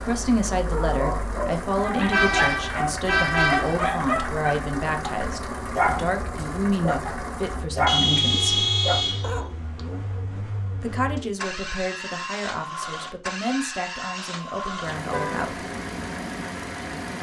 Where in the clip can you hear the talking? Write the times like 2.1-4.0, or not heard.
0.0-8.6, 10.8-15.6.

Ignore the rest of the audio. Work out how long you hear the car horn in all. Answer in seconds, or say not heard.
4 s.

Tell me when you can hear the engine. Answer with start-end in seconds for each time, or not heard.
0.0-17.1.